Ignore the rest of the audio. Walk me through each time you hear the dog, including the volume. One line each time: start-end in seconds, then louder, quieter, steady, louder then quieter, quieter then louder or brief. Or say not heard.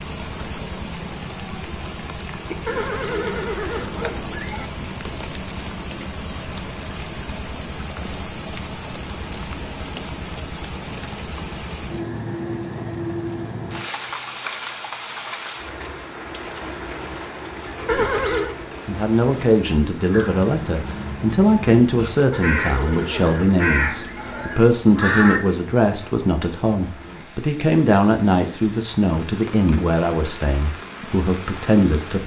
not heard.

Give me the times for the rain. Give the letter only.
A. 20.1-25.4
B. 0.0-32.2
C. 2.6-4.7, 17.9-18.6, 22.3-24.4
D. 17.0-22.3
B.